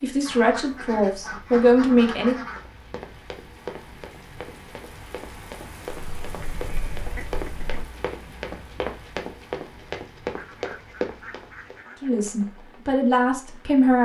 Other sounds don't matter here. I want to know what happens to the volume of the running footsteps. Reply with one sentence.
The volume of the running footsteps goes up.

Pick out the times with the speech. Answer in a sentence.
You can hear the speech from 0.0 to 2.5 s and from 12.0 to 14.0 s.